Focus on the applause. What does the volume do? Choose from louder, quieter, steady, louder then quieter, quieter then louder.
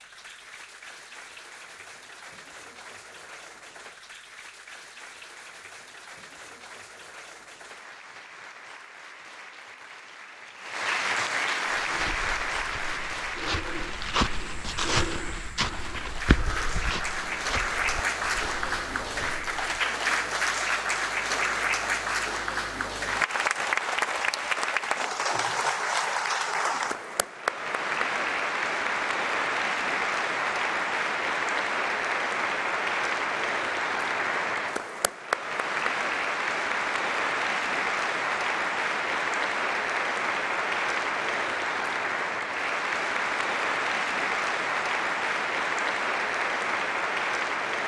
louder.